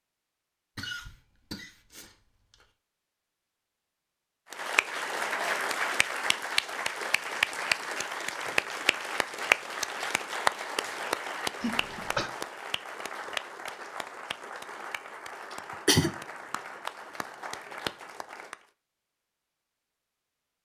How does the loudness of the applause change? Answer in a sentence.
The loudness of the applause goes down.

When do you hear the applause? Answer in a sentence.
The applause can be heard from 4.5 to 18.6 s.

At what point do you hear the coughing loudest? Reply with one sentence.
The loudest moment of the coughing is at 16 seconds.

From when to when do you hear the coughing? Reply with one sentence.
The coughing can be heard from 0.8 to 2.6 s, from 11.6 to 12.3 s and from 15.5 to 16.1 s.